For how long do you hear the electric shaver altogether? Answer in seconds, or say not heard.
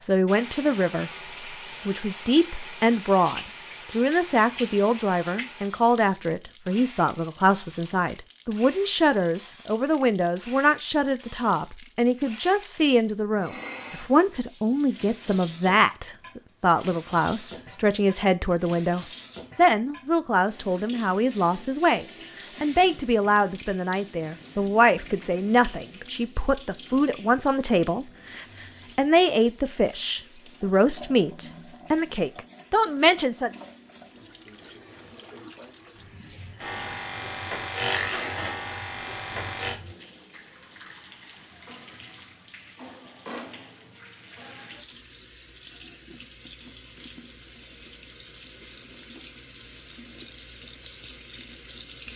3 s.